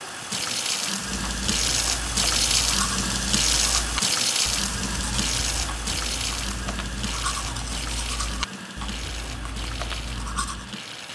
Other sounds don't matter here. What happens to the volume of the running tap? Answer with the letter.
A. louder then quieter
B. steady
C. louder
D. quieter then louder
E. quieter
E.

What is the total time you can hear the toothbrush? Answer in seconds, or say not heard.
10 s.